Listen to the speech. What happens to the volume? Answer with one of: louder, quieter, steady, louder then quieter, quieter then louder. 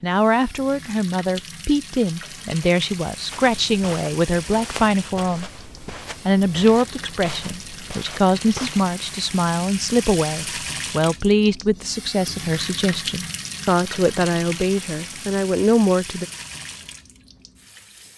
steady.